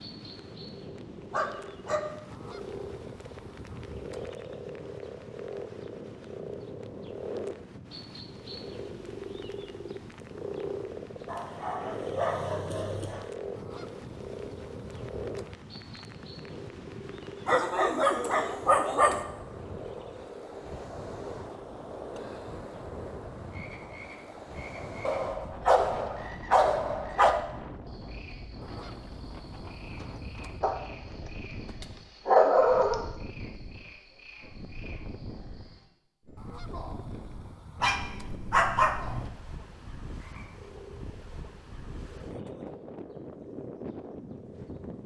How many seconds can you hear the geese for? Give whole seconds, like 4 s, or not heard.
8 s.